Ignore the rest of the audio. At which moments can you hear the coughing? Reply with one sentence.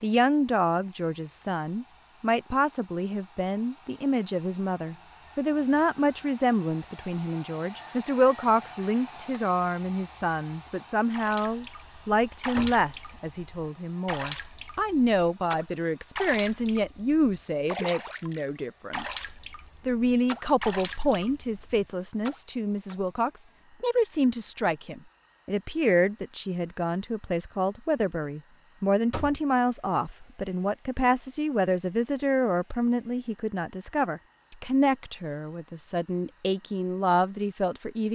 The coughing can't be heard in this clip.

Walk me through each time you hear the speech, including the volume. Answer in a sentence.
You can hear the speech from 0.0 to 38.1 s, at a steady volume.